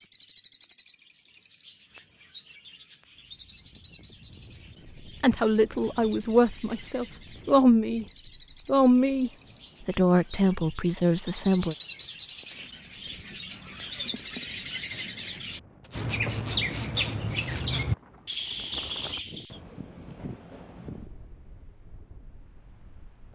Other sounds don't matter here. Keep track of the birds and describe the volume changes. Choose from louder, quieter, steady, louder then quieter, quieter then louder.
louder.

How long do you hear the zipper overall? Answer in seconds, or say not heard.
2 s.